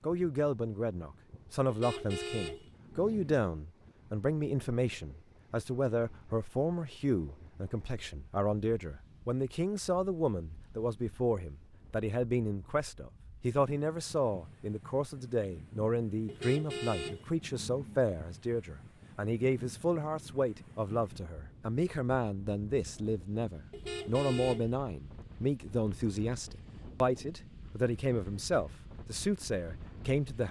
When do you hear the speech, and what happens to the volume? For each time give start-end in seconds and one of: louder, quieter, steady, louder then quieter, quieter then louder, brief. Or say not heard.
0.0-30.4 steady.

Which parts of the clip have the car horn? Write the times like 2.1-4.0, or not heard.
1.6-3.4, 16.2-18.0, 23.7-24.8.